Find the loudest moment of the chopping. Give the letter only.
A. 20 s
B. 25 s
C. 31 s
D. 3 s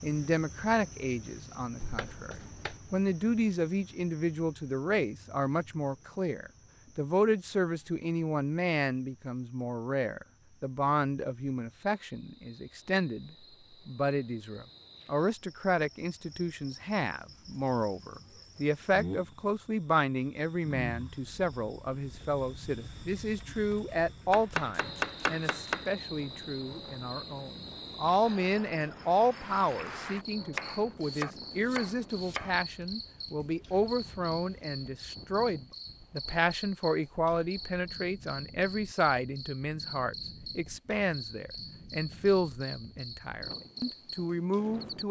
B.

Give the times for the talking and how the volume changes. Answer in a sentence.
You can hear the talking from 0.0 to 45.0 s, at a steady volume.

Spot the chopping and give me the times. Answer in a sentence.
The chopping can be heard from 1.8 to 2.8 s, from 24.3 to 25.9 s and from 30.5 to 32.5 s.